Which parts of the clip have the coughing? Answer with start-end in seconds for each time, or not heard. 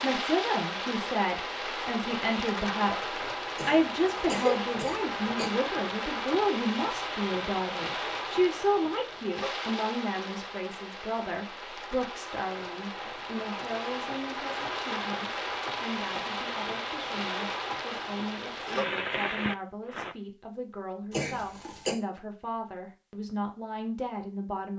3.5-5.5, 21.1-21.9.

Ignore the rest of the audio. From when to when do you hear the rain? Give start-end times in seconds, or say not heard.
0.0-20.1.